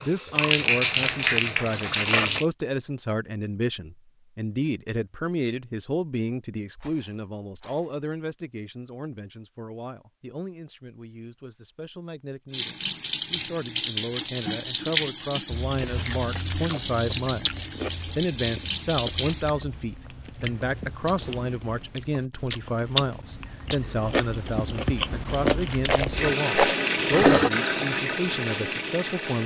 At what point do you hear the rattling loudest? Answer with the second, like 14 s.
27 s.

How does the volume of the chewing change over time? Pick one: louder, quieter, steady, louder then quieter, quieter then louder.
quieter then louder.